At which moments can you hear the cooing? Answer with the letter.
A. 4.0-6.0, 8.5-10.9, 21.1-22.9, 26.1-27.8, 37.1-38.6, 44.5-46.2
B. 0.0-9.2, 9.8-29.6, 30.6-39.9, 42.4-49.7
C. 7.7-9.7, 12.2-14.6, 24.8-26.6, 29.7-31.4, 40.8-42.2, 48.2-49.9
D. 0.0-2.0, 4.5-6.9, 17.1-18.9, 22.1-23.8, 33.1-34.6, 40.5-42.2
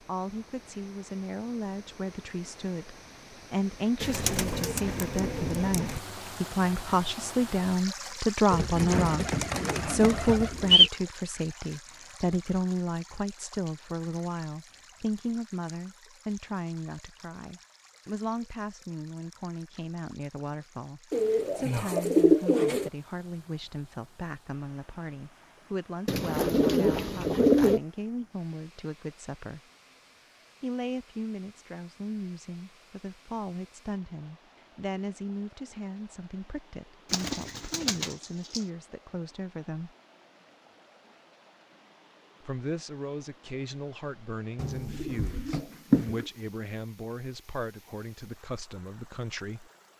A.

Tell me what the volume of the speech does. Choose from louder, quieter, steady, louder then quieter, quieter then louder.
quieter.